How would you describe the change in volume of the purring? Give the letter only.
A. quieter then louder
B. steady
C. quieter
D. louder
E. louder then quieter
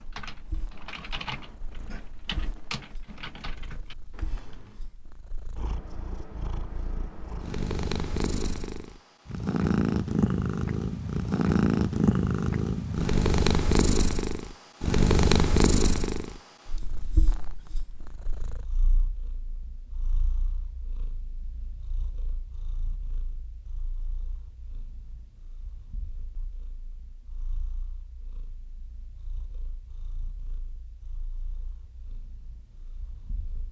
E.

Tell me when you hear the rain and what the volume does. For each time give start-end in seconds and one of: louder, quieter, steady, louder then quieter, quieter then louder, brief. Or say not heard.
not heard.